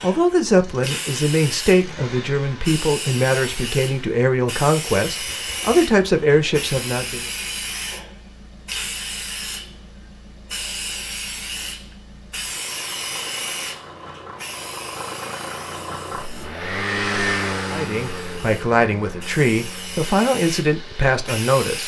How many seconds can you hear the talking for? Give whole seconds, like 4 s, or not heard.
11 s.